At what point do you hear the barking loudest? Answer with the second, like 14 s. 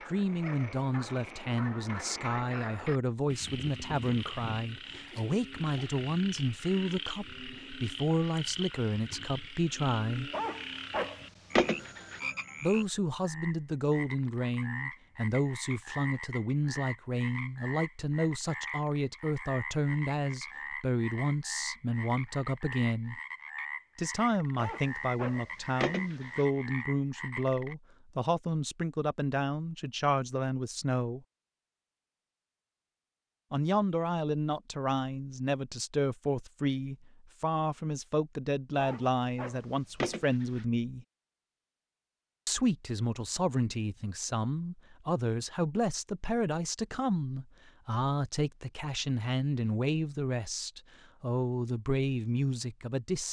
12 s.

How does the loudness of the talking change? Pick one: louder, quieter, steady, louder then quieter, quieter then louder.
steady.